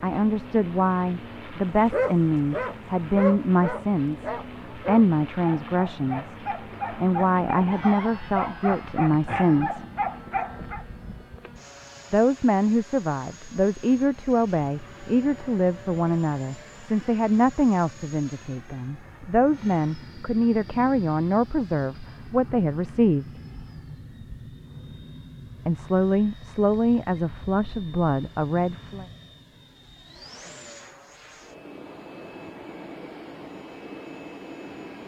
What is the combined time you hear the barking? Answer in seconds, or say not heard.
9 s.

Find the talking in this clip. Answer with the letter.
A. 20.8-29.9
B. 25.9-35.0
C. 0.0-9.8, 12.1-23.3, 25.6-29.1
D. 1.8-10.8
C.